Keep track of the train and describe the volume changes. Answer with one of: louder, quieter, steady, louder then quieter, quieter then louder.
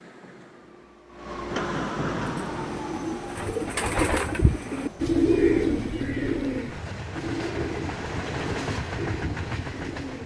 quieter then louder.